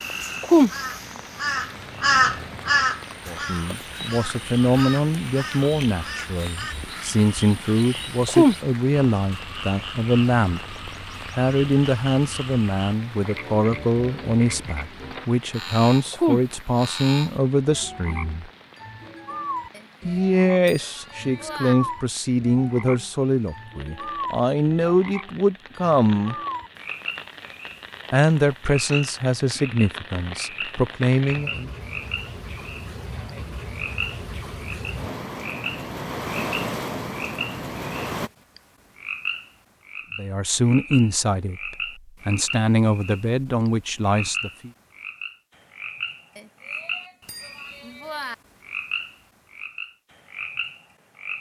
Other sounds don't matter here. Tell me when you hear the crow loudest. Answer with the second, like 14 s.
2 s.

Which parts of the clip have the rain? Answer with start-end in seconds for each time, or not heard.
0.0-38.3.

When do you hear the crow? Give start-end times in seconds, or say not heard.
0.6-6.8.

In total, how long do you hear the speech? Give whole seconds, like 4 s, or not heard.
30 s.